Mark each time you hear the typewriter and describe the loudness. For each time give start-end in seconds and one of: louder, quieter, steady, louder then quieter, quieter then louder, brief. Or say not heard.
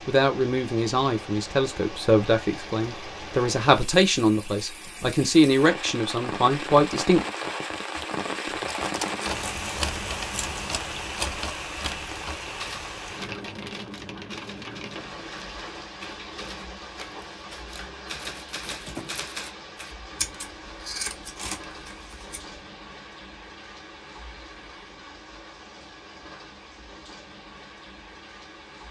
8.0-19.9 quieter then louder.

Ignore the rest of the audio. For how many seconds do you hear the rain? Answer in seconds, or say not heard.
29 s.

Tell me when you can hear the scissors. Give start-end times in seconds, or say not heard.
9.0-10.8, 20.1-22.6.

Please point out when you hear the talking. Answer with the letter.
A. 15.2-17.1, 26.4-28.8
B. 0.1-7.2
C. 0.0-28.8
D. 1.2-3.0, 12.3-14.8
B.